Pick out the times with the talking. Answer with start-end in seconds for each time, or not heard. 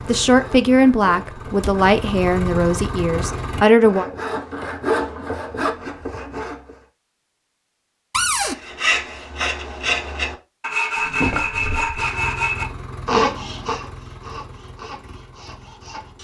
0.1-4.0.